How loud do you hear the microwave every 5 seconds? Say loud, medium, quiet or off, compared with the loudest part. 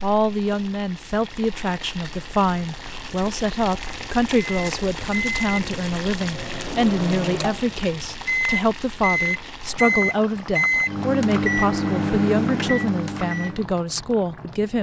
off, loud, loud.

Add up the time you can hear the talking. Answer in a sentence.
You can hear the talking for 15 seconds altogether.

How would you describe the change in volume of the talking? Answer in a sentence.
The volume of the talking stays about the same.